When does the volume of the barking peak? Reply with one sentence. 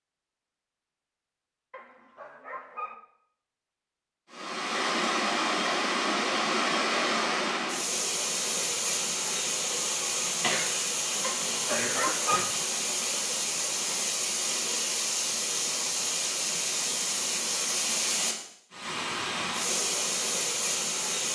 The loudest moment of the barking is at 12 seconds.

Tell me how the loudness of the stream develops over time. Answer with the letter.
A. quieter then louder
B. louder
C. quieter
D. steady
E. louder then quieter
D.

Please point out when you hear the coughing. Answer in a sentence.
You can hear the coughing from 10.4 to 12.4 s.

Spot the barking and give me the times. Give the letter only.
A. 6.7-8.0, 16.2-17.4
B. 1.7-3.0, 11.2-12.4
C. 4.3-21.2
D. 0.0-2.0
B.